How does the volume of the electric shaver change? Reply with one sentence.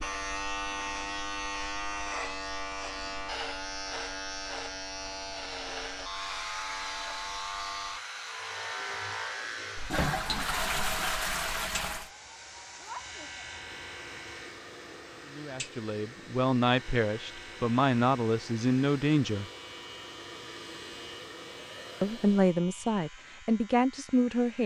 The loudness of the electric shaver goes down.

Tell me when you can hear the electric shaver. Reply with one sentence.
You can hear the electric shaver from 0.0 to 24.6 s.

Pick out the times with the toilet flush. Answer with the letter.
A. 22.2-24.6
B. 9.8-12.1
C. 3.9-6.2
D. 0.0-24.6
B.